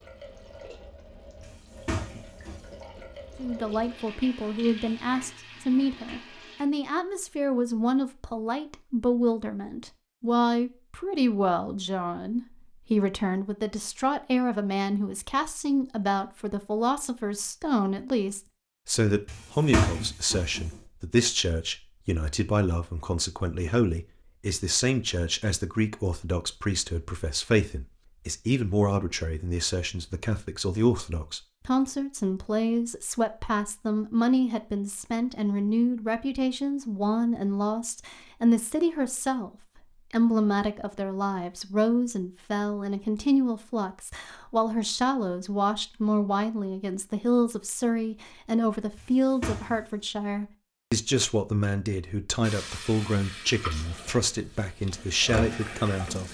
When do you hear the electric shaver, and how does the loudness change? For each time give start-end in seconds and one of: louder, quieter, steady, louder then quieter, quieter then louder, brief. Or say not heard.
not heard.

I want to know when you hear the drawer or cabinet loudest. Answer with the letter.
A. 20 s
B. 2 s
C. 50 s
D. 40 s
A.